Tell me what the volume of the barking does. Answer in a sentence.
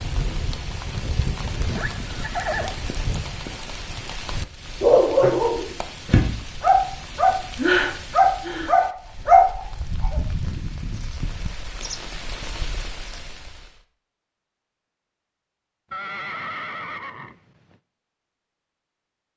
The volume of the barking goes up.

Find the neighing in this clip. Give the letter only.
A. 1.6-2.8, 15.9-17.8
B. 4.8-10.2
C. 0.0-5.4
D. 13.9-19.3
A.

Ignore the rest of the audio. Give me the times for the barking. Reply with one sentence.
The barking can be heard from 4.8 to 10.2 s.